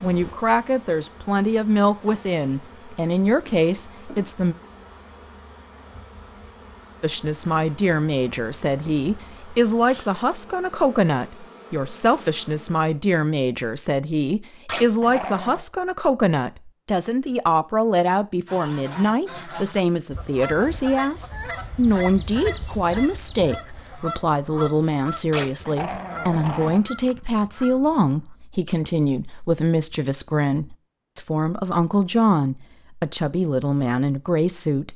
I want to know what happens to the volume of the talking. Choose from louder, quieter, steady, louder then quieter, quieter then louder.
steady.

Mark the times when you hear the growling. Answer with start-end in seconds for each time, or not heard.
14.7-15.7, 25.3-26.8.